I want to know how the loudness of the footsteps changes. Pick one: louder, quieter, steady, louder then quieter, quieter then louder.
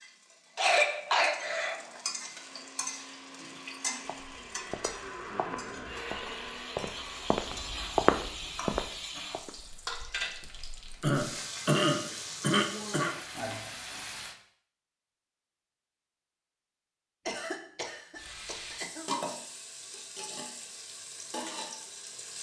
louder then quieter.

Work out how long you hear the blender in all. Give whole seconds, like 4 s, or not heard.
6 s.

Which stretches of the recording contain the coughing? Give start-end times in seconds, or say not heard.
0.6-2.0, 11.0-13.2, 17.2-19.1.